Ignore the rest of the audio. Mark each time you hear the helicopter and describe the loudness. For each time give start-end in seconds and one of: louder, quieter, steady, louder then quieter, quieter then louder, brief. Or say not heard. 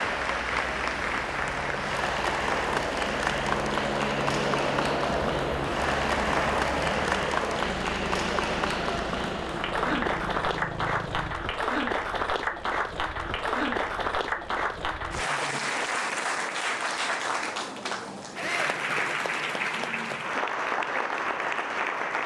0.0-11.3 louder then quieter.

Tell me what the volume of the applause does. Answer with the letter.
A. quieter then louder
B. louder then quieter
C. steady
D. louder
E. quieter
C.